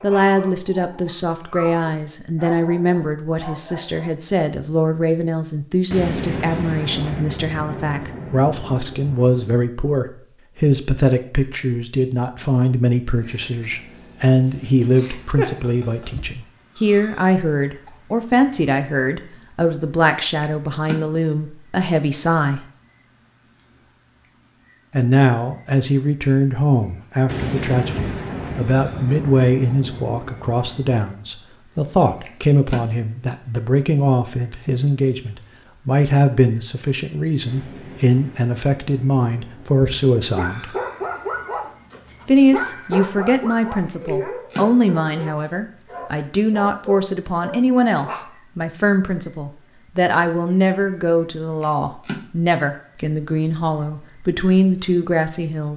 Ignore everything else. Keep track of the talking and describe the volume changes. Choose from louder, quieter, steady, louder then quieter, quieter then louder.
steady.